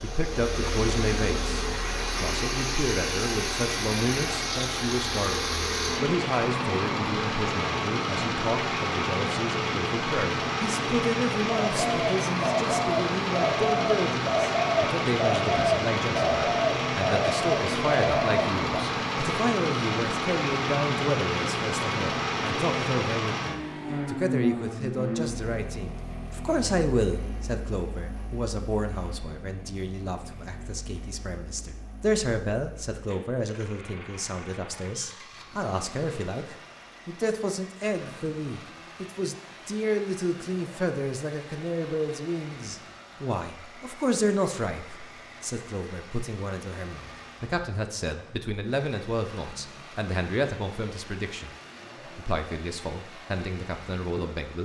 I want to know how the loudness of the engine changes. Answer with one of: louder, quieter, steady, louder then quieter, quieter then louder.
quieter.